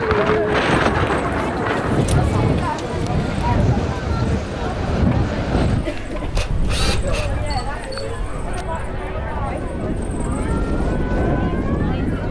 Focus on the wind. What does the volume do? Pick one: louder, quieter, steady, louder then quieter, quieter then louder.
quieter then louder.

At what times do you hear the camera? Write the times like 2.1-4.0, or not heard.
6.1-8.7.